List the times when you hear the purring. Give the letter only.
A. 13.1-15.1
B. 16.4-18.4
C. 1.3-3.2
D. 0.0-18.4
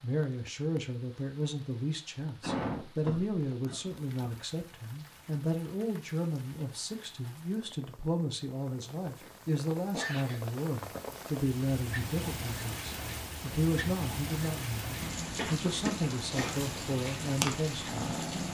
B.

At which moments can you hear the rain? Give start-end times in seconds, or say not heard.
0.0-18.4.